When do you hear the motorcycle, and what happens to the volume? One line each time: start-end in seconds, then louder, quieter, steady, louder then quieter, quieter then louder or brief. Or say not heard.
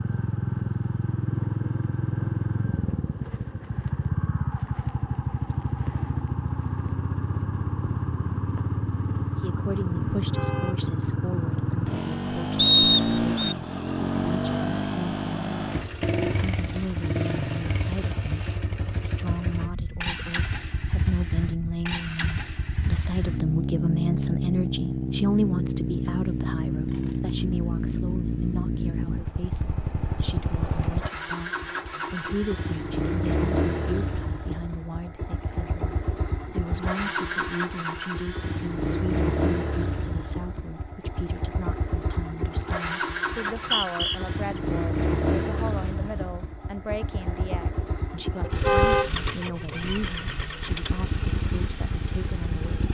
0.0-52.9 steady.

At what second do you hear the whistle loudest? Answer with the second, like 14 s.
13 s.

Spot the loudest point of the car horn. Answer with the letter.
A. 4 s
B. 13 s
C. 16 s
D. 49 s
D.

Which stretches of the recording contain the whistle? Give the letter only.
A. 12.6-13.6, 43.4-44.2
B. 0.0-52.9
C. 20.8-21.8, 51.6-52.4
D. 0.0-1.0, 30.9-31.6
A.